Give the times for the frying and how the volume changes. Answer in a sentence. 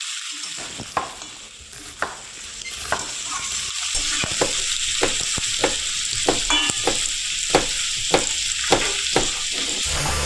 The frying can be heard from 0.0 to 10.2 s, getting louder.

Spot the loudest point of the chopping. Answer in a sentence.
The volume of the chopping peaks at 9 seconds.